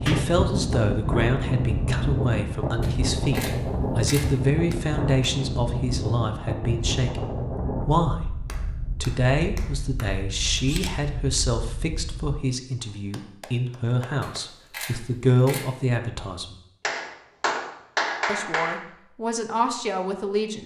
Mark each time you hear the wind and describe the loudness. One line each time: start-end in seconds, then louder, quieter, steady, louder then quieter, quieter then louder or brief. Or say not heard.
0.0-12.3 quieter.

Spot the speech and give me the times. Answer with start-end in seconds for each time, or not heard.
0.0-7.2, 7.8-8.2, 9.0-16.6, 18.2-20.6.